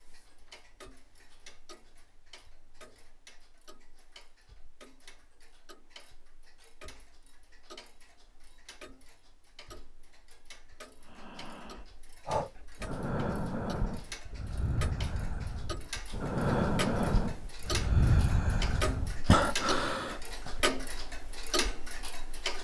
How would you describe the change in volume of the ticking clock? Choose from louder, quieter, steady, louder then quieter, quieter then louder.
louder.